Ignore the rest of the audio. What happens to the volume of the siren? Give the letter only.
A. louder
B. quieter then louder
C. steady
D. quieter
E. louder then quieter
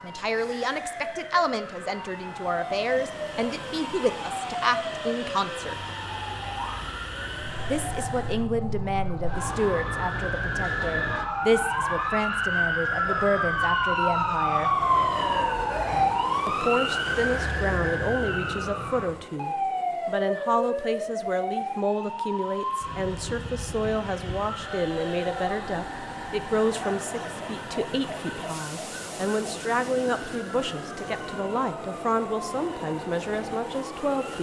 E.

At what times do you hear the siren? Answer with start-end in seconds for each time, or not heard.
0.0-34.3.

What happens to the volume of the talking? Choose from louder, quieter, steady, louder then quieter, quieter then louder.
steady.